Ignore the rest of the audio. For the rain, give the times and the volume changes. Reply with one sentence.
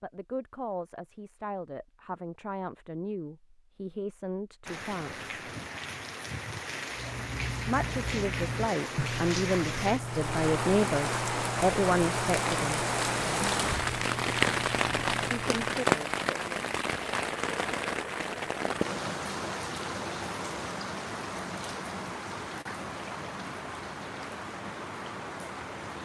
The rain can be heard from 4.7 to 26.0 s, getting louder then quieter.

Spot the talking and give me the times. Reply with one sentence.
You can hear the talking from 0.0 to 5.3 s, from 7.7 to 12.8 s and from 15.3 to 16.6 s.